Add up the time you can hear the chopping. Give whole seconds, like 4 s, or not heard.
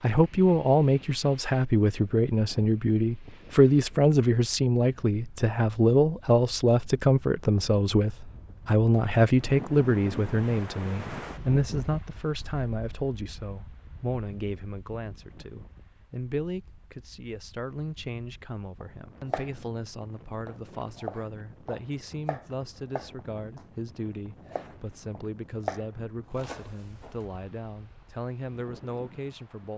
8 s.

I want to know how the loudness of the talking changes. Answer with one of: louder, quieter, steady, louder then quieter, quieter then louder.
quieter.